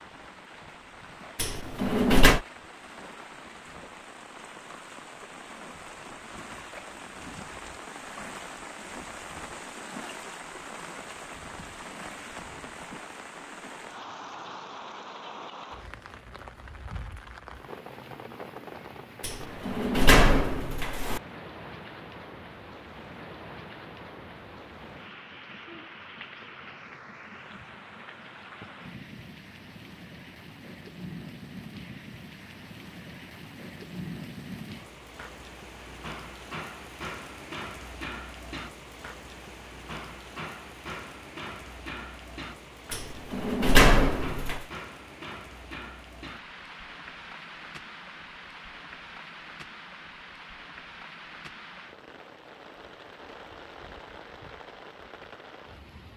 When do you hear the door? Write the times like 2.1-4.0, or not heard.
1.4-2.4, 19.2-21.2, 42.9-44.6.